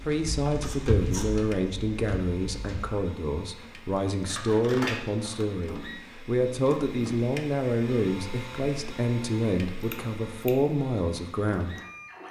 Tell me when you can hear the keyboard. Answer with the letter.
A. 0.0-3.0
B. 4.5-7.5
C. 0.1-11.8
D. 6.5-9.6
A.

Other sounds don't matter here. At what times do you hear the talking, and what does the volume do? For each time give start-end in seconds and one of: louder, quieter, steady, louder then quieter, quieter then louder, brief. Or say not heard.
0.1-11.8 steady.